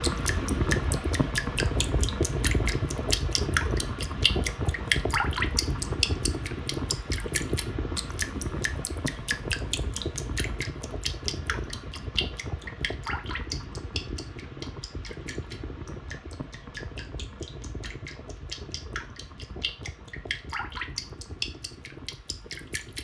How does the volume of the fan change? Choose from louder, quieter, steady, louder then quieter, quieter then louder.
quieter.